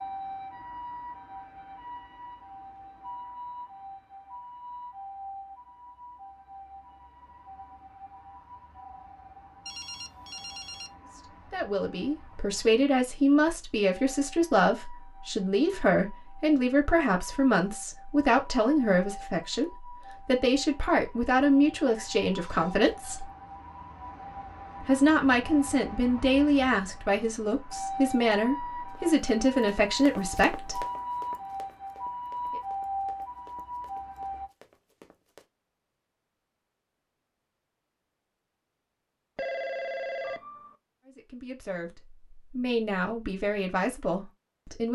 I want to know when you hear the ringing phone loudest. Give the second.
40 s.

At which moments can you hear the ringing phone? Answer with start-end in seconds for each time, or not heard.
9.7-10.9, 22.4-23.2, 39.4-40.8.